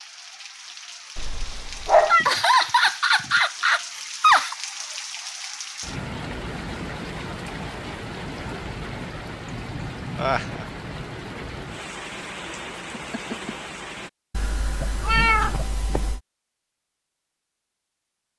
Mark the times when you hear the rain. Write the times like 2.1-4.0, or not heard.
0.0-14.1.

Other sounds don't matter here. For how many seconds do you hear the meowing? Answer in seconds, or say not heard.
3 s.